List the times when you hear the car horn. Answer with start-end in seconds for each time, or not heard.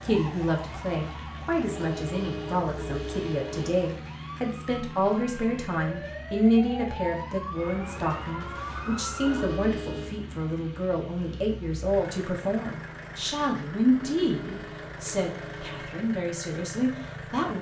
1.7-3.7, 9.2-10.2, 14.2-15.9.